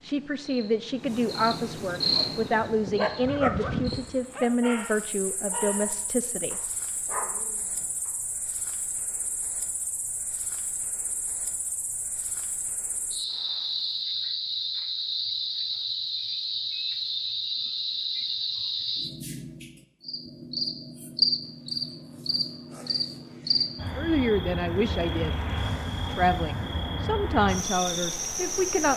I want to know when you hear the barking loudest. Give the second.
4 s.